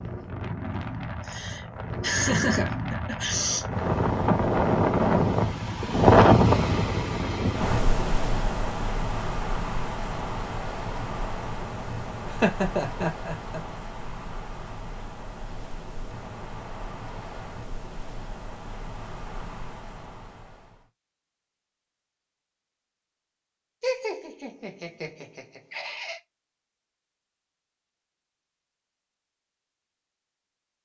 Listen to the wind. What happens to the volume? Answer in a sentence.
The loudness of the wind goes up, then down.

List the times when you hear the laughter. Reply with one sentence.
You can hear the laughter from 1.2 to 3.6 s, from 12.2 to 13.6 s and from 23.8 to 26.2 s.